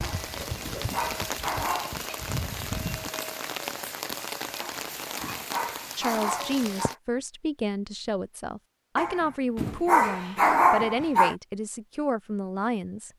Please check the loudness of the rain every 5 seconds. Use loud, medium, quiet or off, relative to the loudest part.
loud, loud, off.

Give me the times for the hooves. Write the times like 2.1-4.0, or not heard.
0.0-3.1.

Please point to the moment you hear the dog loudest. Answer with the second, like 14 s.
11 s.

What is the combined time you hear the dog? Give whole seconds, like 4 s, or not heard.
7 s.